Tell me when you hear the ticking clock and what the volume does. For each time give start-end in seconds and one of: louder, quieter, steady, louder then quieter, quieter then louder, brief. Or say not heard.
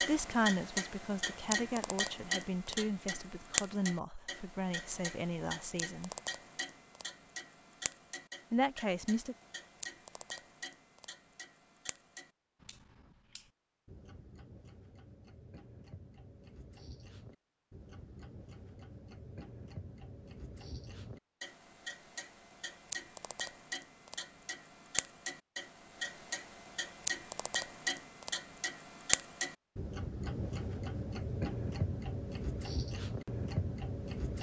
0.0-34.3 quieter then louder.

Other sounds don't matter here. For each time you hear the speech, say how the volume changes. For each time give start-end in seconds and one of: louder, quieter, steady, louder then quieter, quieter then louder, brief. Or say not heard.
0.1-6.1 steady
8.5-9.3 brief.